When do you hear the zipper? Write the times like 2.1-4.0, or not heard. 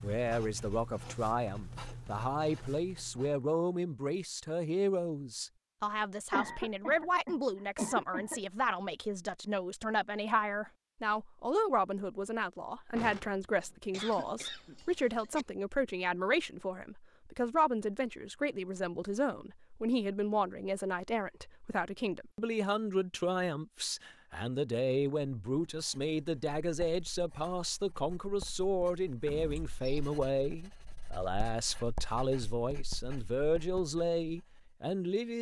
not heard.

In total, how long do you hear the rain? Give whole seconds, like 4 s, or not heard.
not heard.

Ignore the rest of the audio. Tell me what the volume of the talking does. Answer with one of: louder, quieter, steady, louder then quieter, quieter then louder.
steady.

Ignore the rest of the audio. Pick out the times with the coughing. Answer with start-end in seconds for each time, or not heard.
6.3-8.4, 13.9-15.4, 29.6-30.1.